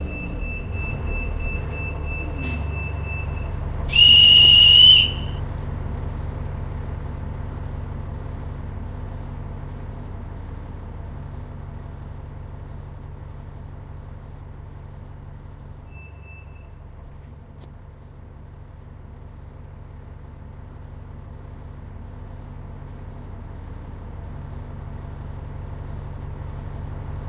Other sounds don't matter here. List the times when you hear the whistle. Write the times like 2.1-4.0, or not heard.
3.9-5.2.